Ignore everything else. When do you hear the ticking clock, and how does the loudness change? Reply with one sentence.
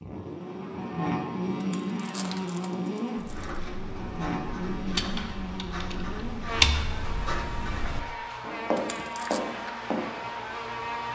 The ticking clock can't be heard in this clip.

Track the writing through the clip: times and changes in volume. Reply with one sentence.
The writing can be heard from 3.1 to 10.1 s, getting louder.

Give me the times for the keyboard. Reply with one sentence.
You can hear the keyboard from 4.9 to 7.0 s.